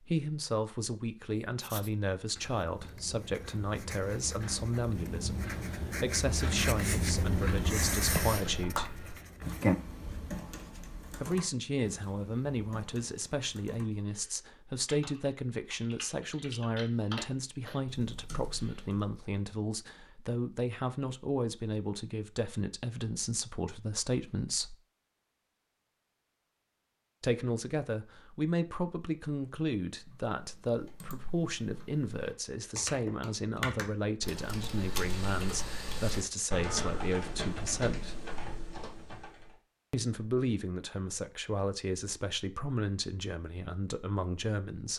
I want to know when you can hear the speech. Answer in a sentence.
The speech can be heard from 0.0 to 8.9 s, from 11.1 to 24.8 s, from 27.2 to 38.2 s and from 39.9 to 44.9 s.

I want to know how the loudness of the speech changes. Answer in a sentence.
The volume of the speech stays about the same.